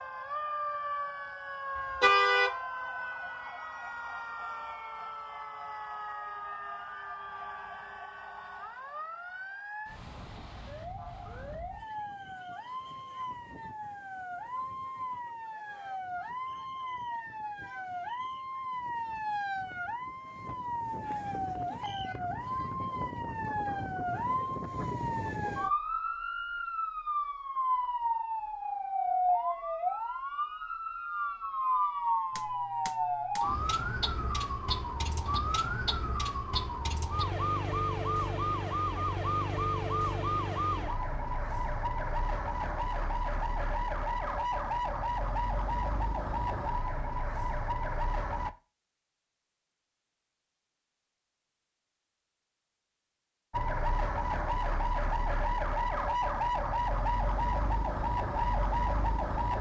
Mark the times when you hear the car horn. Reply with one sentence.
You can hear the car horn from 2.0 to 2.5 s.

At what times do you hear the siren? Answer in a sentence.
The siren can be heard from 0.0 to 48.5 s and from 53.5 to 59.5 s.